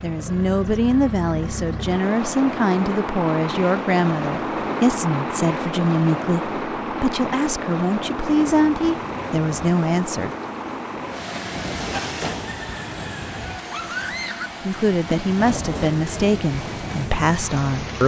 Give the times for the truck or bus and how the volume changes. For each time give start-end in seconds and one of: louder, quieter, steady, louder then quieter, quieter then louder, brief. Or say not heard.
0.0-18.0 quieter.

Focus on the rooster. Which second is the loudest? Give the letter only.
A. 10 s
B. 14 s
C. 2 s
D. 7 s
B.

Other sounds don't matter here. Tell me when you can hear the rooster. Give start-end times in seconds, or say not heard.
12.4-14.5.